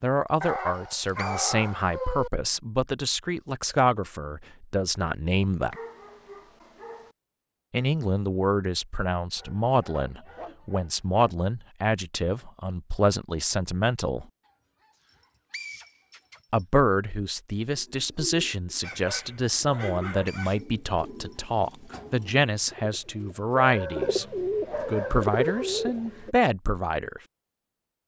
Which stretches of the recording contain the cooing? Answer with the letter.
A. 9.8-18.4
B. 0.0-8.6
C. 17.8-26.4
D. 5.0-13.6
C.